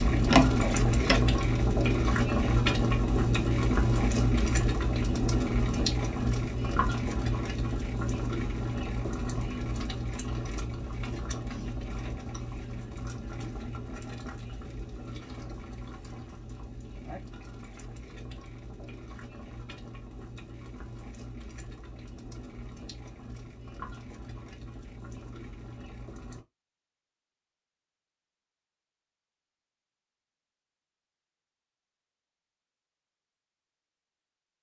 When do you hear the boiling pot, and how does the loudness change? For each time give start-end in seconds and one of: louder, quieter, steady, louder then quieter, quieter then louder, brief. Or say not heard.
0.0-26.4 quieter.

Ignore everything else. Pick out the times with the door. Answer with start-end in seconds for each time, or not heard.
0.2-1.3.